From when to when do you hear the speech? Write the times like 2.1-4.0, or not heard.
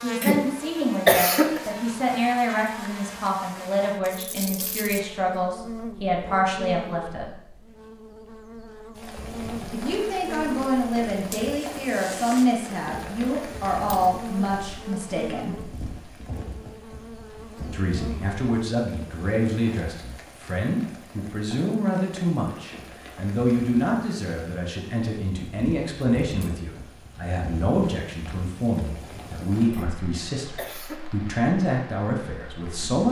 0.0-7.3, 9.7-15.7, 17.7-33.0.